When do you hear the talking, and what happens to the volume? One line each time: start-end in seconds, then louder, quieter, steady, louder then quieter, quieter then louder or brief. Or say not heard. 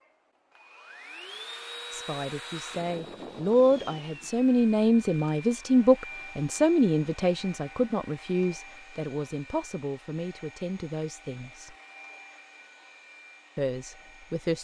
1.9-11.8 quieter
13.6-14.5 brief.